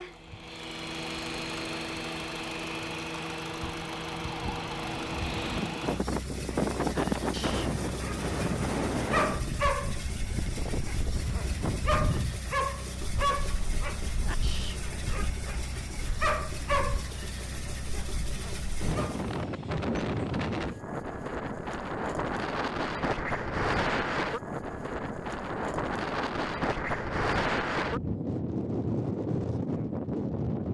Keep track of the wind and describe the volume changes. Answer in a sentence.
The volume of the wind goes down, then up.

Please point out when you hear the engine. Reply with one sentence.
The engine can be heard from 0.0 to 19.4 s.